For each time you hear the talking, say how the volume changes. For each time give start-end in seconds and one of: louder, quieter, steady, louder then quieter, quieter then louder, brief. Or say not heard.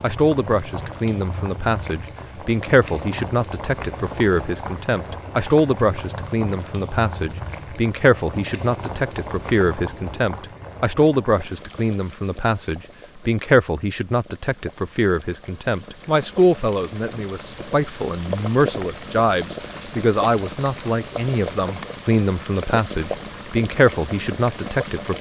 0.0-25.1 steady.